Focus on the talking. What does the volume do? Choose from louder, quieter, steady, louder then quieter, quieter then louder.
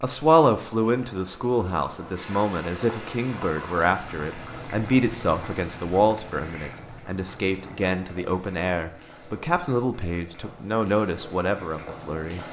steady.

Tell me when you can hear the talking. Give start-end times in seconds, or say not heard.
0.0-12.4.